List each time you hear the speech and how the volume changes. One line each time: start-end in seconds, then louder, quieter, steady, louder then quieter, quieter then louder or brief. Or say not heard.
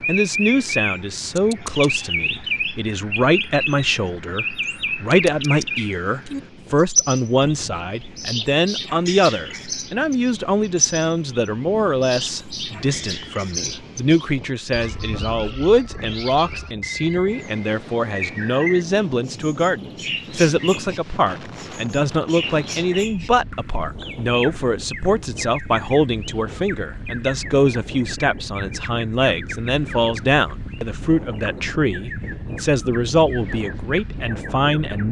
0.1-35.0 steady.